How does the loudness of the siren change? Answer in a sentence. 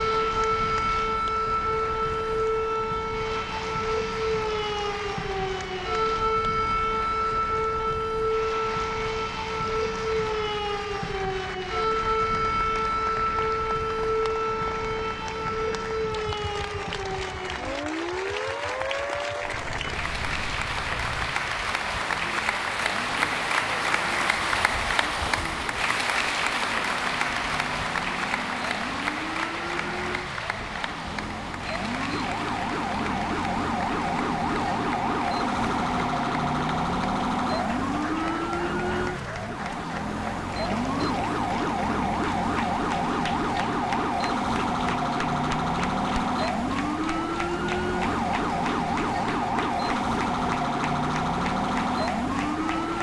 The volume of the siren goes down, then up.